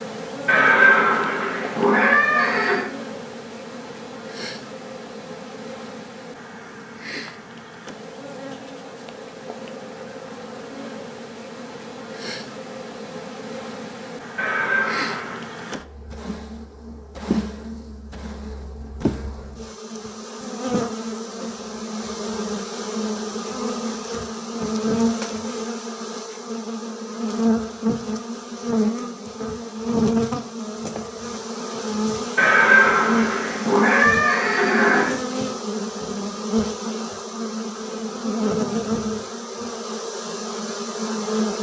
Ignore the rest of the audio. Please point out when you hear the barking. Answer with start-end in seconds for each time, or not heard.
not heard.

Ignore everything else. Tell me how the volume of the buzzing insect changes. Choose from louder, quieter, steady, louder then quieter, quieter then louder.
louder.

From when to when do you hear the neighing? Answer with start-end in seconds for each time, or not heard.
0.5-2.9, 14.3-15.4, 32.4-35.1.